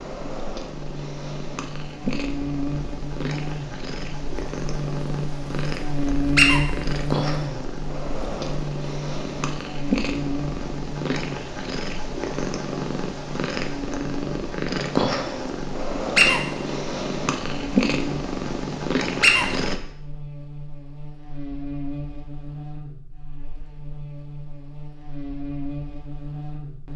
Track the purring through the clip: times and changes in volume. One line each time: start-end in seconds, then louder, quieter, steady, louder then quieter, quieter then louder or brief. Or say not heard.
0.0-19.8 louder.